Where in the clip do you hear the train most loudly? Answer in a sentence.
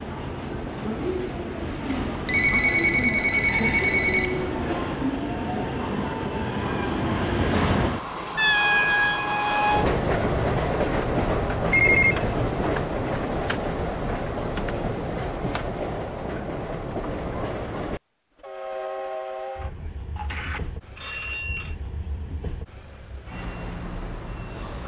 The volume of the train peaks at 9 seconds.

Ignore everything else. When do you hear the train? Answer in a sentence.
You can hear the train from 0.0 to 24.8 s.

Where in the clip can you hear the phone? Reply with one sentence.
You can hear the phone from 2.2 to 4.6 s, from 11.7 to 12.2 s and from 19.6 to 21.8 s.